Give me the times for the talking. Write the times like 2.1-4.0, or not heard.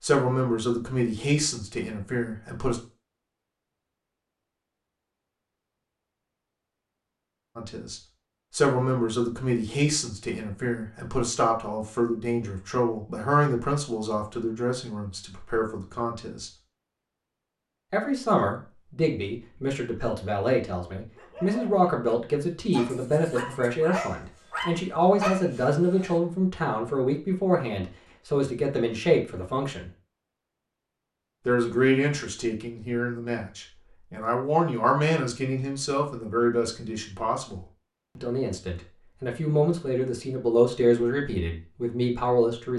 0.0-2.8, 7.5-16.5, 17.9-29.9, 31.4-42.7.